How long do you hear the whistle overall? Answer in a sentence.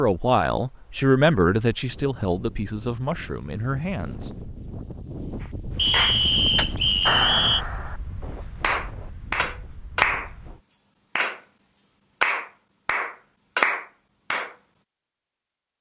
You can hear the whistle for 2 seconds altogether.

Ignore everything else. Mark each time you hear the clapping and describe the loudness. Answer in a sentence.
You can hear the clapping briefly from 5.4 to 8.0 s; and from 8.6 to 14.6 s, getting quieter then louder.